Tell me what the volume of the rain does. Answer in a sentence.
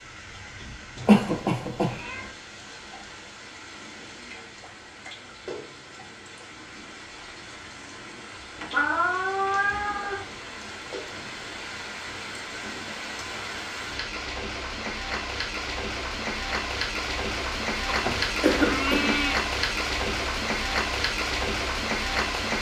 The volume of the rain goes up.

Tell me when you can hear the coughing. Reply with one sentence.
You can hear the coughing from 1.1 to 1.9 s and from 18.4 to 19.1 s.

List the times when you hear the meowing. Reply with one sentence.
The meowing can be heard from 0.9 to 2.4 s, from 8.6 to 10.2 s and from 17.9 to 19.4 s.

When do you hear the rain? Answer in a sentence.
The rain can be heard from 0.0 to 22.5 s.